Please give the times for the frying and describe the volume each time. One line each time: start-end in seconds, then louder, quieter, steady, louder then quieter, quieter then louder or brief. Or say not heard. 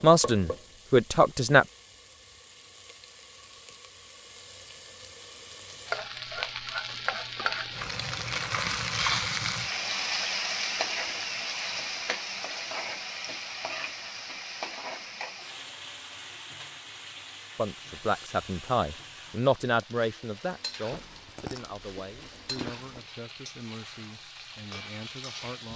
0.0-25.7 louder then quieter.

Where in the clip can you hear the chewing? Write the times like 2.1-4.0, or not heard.
6.8-8.6, 20.9-23.1.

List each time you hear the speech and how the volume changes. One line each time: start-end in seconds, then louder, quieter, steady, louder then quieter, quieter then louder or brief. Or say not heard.
0.0-1.6 brief
17.6-25.7 quieter.